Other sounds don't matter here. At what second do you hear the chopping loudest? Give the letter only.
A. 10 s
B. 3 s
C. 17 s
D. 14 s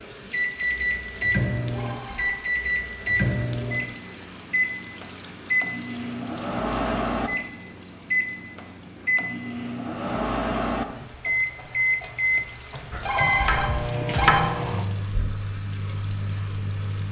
D.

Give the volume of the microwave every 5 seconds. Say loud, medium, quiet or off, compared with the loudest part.
loud, loud, loud, medium.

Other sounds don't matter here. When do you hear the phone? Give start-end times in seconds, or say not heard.
1.6-2.4, 12.8-14.4.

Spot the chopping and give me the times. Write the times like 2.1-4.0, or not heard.
12.9-14.5.